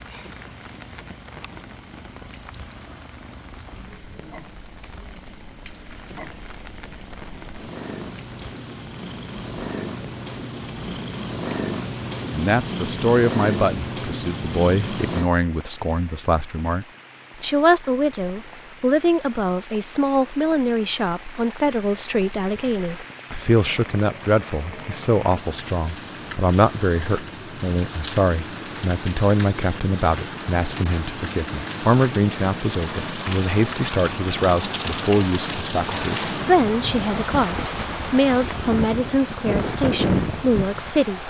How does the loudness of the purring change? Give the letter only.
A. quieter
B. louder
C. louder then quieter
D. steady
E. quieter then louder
B.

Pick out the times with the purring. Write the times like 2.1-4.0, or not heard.
0.0-15.3.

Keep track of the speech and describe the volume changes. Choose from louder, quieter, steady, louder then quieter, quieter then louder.
steady.